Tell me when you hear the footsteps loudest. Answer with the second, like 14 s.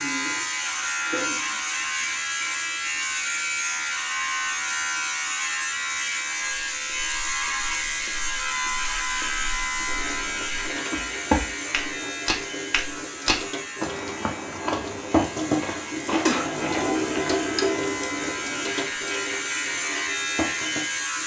11 s.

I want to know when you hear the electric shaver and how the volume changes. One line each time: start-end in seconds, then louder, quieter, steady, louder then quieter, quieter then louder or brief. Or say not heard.
0.0-21.2 quieter then louder.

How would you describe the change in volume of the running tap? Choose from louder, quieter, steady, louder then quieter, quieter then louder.
louder.